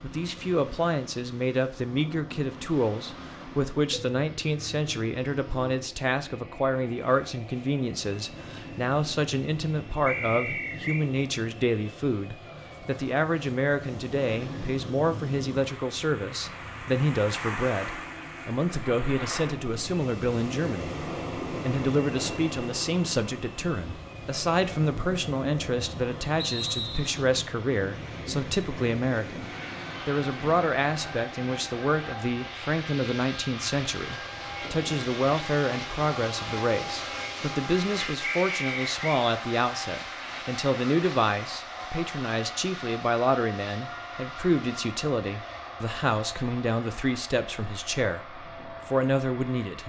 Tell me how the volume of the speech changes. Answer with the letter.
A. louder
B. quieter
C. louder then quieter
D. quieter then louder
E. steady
E.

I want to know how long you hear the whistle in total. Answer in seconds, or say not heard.
3 s.